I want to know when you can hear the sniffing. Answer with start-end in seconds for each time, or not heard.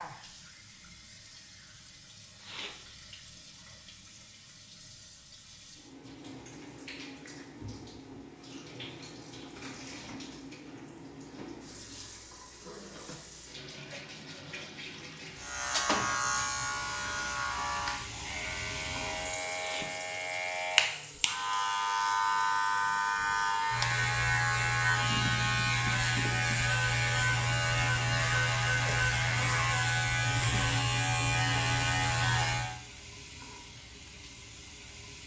2.4-2.8, 19.5-19.9.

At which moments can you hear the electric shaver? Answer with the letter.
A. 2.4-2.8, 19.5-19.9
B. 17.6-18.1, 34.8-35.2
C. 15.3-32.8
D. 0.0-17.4
C.